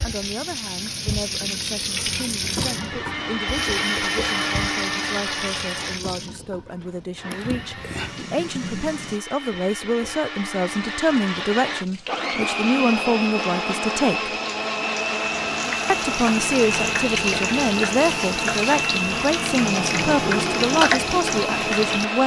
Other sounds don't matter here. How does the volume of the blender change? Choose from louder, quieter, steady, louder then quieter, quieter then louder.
quieter then louder.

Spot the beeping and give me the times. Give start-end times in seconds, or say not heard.
7.3-8.3.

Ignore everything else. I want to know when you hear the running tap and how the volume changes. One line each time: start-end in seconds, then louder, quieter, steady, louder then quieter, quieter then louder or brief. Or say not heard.
0.0-9.2 quieter
10.9-22.2 louder.